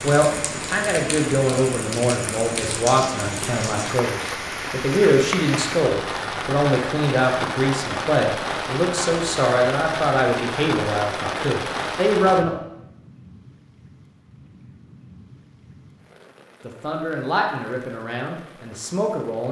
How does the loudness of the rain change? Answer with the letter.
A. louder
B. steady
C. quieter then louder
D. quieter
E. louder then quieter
D.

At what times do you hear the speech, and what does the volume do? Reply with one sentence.
The speech can be heard from 0.0 to 12.6 s, at a steady volume; and briefly from 16.6 to 19.4 s.